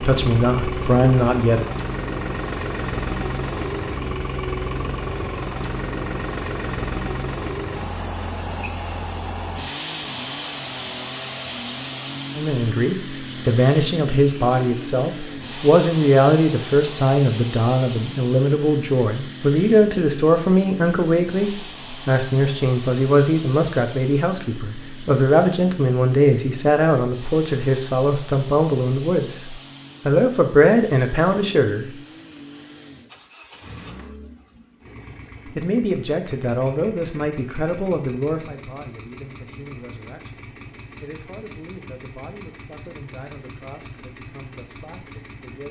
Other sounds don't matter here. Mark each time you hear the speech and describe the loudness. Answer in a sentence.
The speech can be heard briefly from 0.0 to 1.6 s; from 12.3 to 31.9 s, at a steady volume; and from 35.5 to 45.6 s, getting quieter.